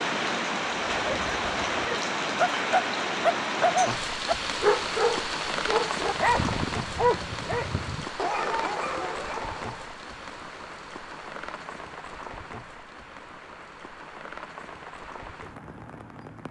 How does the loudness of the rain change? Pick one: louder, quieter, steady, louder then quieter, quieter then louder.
quieter.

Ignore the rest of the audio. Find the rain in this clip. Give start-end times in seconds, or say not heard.
0.0-16.4.